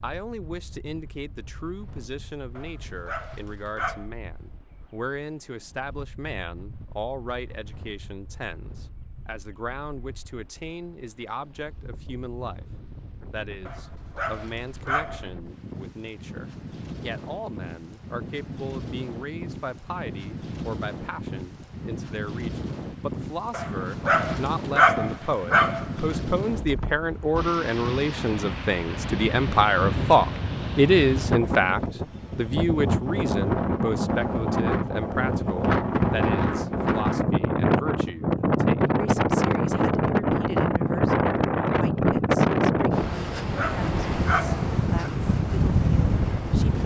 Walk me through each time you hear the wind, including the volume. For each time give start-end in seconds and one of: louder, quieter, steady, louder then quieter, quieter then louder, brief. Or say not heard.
0.0-46.8 louder.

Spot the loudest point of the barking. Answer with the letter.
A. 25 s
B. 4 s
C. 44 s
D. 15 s
A.